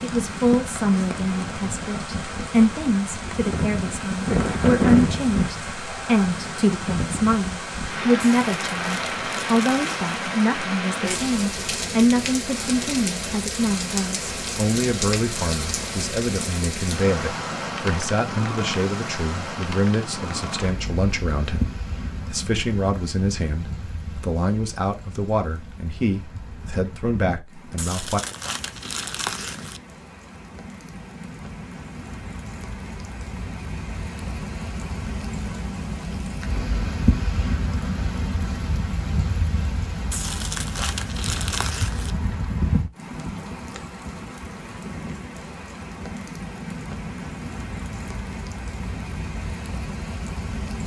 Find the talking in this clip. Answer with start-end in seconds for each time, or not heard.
0.0-28.2.